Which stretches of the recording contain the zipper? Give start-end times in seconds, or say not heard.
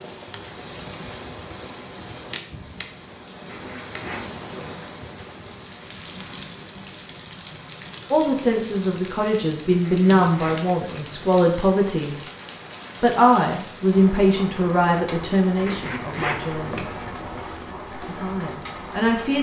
3.5-4.4, 9.8-11.2, 15.7-17.4.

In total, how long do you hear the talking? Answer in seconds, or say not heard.
9 s.